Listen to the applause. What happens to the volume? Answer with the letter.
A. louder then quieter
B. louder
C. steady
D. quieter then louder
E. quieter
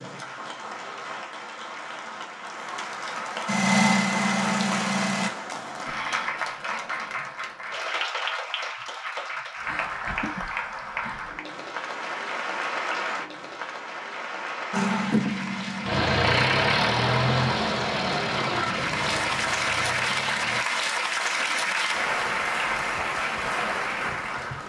B.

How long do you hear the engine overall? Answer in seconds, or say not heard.
8 s.